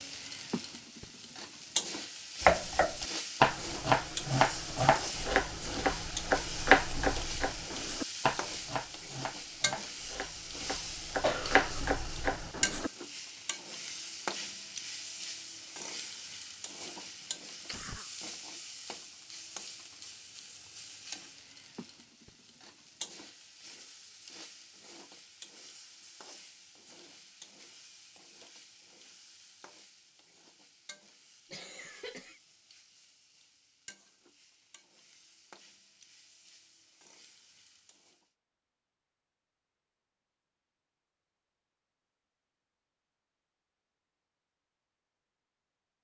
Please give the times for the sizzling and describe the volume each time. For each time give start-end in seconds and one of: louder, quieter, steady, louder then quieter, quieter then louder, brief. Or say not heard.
0.0-38.3 quieter.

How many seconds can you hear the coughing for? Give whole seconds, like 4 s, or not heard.
2 s.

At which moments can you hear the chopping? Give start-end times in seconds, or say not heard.
2.4-12.9.